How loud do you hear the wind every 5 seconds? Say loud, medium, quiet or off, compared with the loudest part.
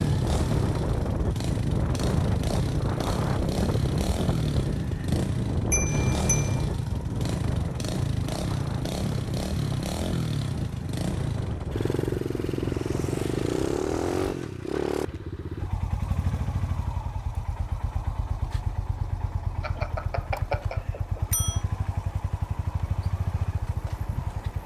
loud, loud, medium, off, off.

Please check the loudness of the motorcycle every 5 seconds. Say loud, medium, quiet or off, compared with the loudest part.
loud, loud, loud, medium, medium.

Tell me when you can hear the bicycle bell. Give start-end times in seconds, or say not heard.
5.7-6.6, 19.6-21.6.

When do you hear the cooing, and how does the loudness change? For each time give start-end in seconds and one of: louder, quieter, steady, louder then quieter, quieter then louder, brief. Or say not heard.
not heard.